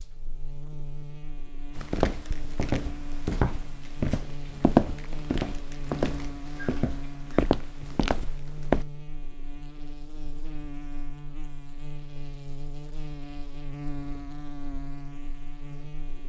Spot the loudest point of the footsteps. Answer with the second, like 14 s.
5 s.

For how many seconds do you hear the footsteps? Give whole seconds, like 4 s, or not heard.
7 s.